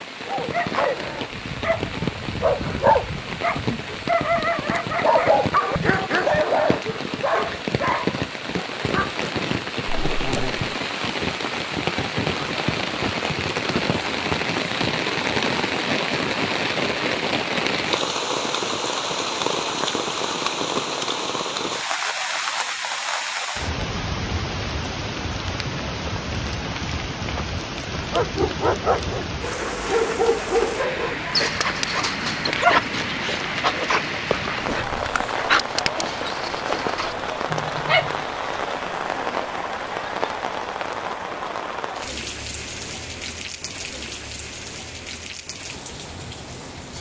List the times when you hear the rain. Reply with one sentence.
The rain can be heard from 0.0 to 46.9 s.